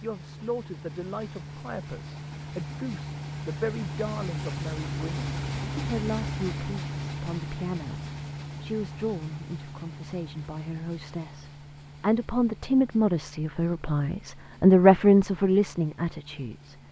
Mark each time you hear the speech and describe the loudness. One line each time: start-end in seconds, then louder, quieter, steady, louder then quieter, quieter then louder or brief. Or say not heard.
0.0-16.8 louder.